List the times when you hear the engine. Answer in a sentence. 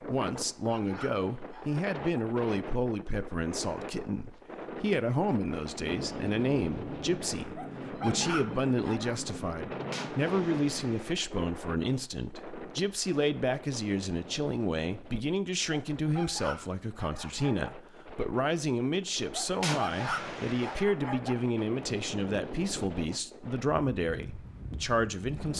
The engine can be heard from 5.8 to 11.0 s.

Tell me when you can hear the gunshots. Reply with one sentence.
You can hear the gunshots from 9.9 to 11.2 s and from 19.6 to 20.9 s.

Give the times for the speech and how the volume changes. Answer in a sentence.
You can hear the speech from 0.0 to 25.5 s, at a steady volume.